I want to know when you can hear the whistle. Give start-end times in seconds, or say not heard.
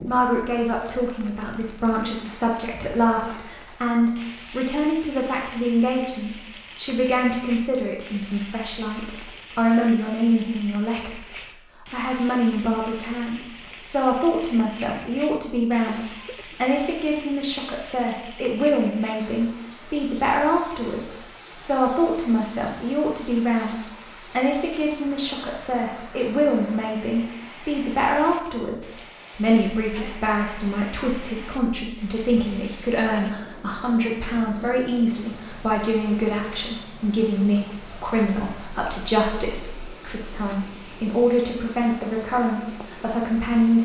not heard.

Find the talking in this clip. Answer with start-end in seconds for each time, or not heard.
0.0-43.7.